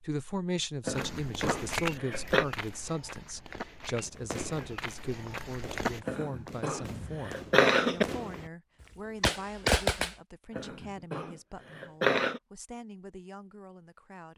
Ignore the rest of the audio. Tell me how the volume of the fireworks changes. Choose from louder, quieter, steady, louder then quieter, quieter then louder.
quieter then louder.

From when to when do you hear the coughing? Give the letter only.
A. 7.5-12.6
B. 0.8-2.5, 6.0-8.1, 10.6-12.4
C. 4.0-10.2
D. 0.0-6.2
B.